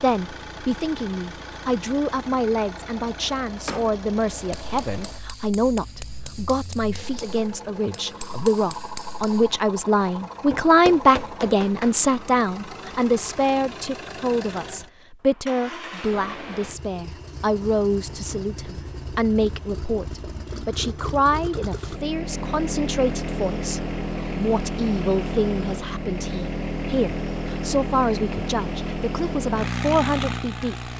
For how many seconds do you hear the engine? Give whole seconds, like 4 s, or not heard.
31 s.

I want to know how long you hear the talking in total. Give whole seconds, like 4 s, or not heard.
31 s.